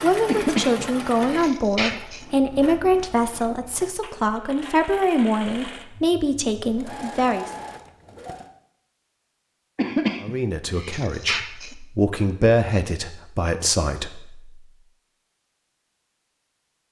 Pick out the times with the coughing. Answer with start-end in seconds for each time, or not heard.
0.2-2.2, 9.8-11.8.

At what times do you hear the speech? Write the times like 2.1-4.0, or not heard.
0.0-7.5, 10.2-14.6.